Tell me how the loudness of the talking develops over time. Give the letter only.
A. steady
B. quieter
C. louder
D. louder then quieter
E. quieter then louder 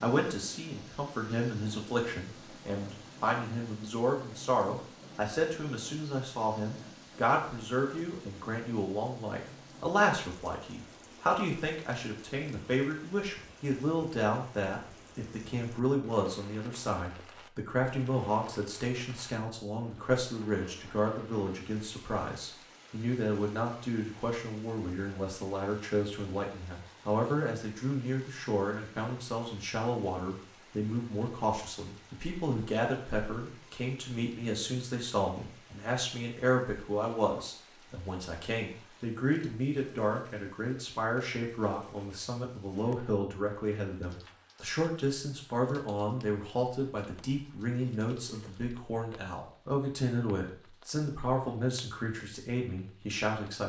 A.